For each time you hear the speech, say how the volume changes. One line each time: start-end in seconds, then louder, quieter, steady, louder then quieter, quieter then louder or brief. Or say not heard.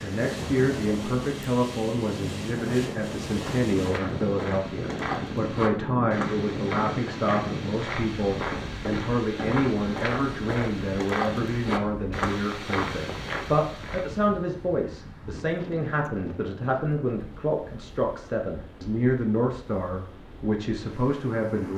0.0-21.7 steady.